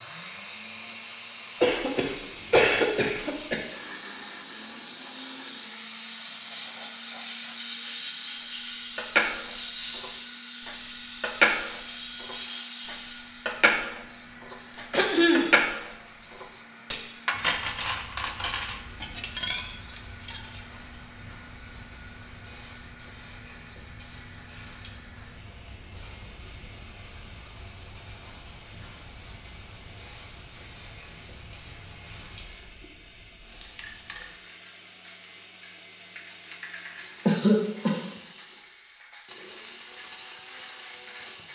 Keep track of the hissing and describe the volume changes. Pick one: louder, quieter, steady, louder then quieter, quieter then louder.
quieter.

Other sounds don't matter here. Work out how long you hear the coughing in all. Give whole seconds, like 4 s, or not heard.
3 s.